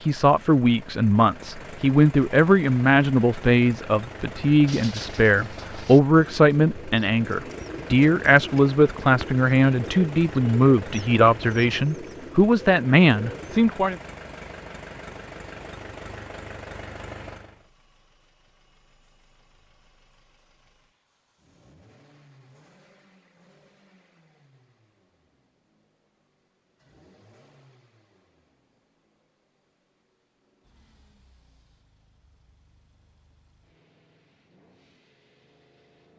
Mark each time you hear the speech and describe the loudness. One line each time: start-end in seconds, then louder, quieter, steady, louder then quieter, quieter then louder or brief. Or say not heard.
0.0-13.9 steady.